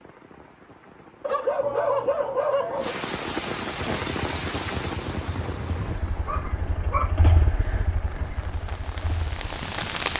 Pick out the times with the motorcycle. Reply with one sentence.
The motorcycle can be heard from 3.9 to 10.1 s.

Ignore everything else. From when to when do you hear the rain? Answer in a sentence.
You can hear the rain from 0.0 to 10.1 s.